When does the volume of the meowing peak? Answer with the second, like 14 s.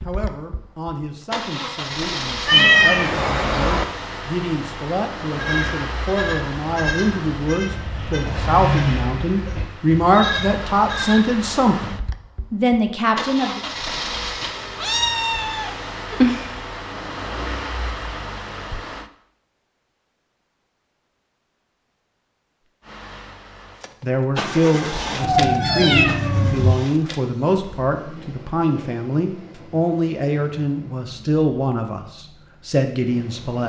3 s.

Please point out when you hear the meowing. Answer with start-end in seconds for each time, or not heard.
2.5-3.9, 14.8-16.5, 25.2-26.8.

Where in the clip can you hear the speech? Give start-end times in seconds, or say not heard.
0.0-13.6, 24.0-33.6.